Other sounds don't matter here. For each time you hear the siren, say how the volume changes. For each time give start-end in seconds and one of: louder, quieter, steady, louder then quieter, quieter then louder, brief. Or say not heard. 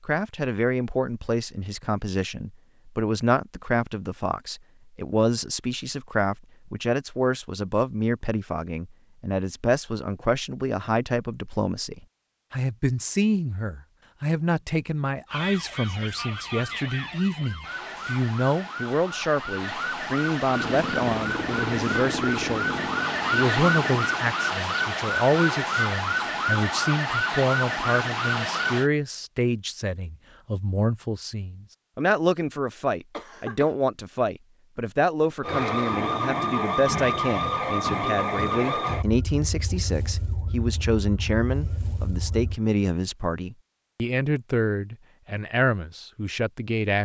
15.2-28.9 louder
35.4-42.6 quieter.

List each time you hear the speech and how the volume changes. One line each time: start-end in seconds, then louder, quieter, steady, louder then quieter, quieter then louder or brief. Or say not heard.
0.0-46.9 steady.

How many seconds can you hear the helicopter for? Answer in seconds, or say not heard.
4 s.